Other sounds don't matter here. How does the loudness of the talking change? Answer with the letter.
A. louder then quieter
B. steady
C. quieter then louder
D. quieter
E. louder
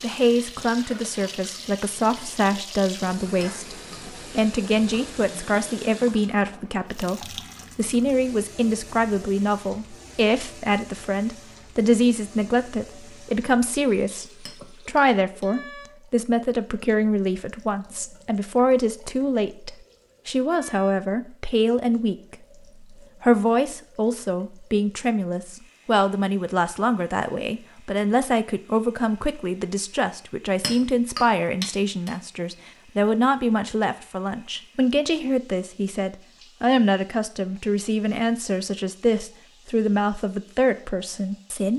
B.